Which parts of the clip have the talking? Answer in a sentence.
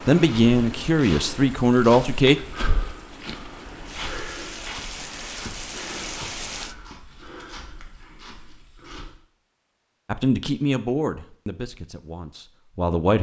You can hear the talking from 0.1 to 2.4 s and from 10.1 to 13.1 s.